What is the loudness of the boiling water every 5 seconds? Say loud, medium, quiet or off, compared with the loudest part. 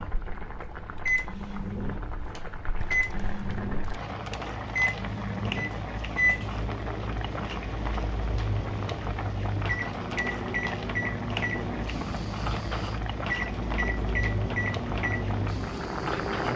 medium, loud, loud, loud.